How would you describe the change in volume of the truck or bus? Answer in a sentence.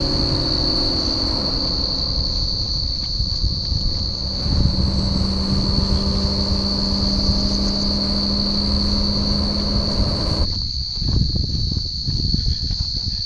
The volume of the truck or bus goes down, then up.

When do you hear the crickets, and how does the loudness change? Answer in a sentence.
You can hear the crickets from 0.0 to 13.2 s, at a steady volume.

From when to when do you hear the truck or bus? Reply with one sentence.
You can hear the truck or bus from 0.0 to 10.5 s.